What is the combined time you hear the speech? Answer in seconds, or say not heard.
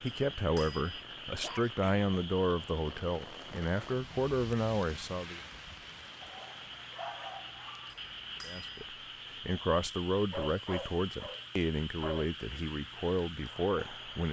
11 s.